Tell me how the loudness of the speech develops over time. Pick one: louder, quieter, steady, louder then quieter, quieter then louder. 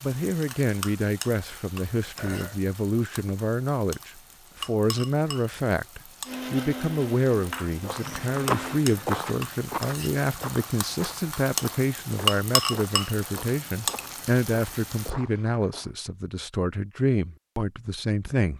steady.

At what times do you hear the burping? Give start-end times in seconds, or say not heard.
2.1-2.6.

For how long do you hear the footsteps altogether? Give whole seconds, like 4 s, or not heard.
8 s.